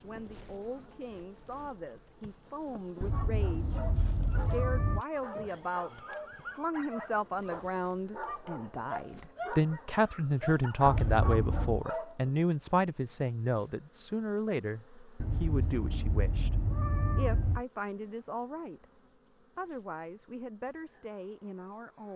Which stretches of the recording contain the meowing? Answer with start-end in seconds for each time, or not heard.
3.0-5.0, 10.8-11.8, 15.2-17.6.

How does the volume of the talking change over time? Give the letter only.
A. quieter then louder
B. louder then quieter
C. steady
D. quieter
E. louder
B.